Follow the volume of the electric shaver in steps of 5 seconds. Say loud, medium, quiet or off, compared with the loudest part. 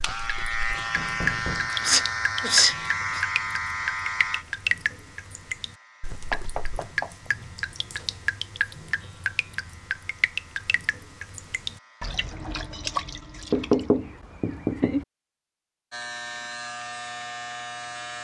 loud, quiet, quiet, medium.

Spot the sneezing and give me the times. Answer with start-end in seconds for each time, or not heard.
1.7-3.2.